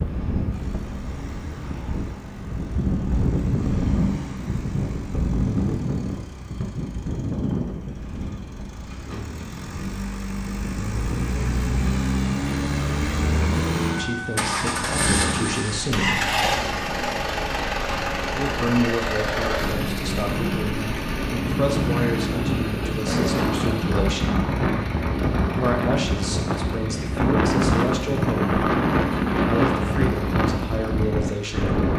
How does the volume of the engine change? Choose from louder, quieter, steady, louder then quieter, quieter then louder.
louder then quieter.